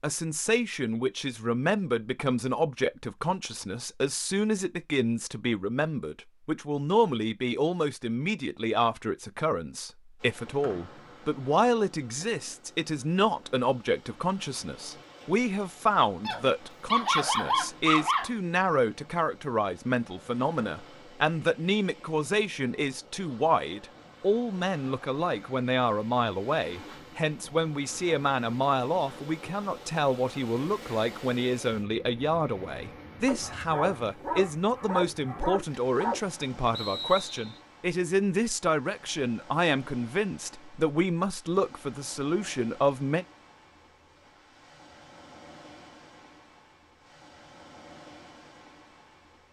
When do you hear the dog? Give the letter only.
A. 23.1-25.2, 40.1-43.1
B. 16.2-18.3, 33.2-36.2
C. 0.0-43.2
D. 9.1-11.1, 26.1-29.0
B.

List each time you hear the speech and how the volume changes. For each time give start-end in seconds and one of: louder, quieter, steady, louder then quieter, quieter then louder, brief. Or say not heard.
0.0-43.2 steady.